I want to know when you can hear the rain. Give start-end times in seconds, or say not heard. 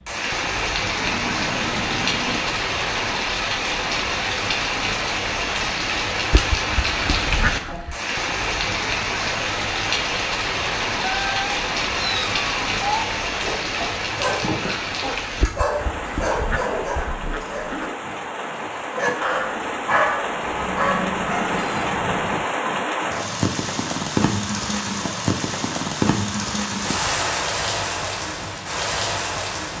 0.0-29.7.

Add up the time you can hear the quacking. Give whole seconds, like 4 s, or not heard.
4 s.